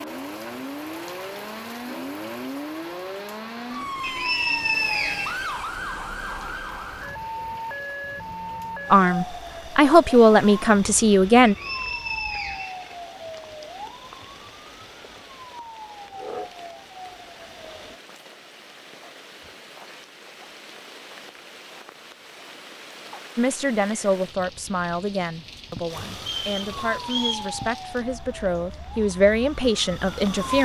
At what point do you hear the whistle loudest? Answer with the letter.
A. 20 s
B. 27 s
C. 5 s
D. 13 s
C.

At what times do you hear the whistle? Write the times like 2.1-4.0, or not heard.
4.0-5.5, 11.4-13.4, 26.4-27.5.